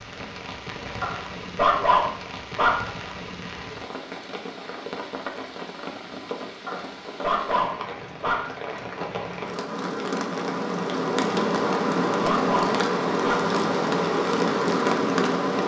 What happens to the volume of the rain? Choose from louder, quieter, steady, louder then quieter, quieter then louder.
louder.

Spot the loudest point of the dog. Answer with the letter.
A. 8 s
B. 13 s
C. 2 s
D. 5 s
C.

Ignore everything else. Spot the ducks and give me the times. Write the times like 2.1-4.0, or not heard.
not heard.